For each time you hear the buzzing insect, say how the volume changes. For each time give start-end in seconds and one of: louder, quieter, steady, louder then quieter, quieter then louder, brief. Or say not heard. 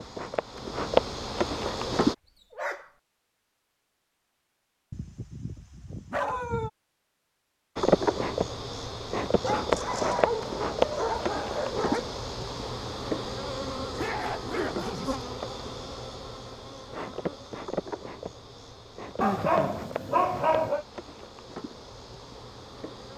0.0-2.1 brief
7.8-23.1 quieter.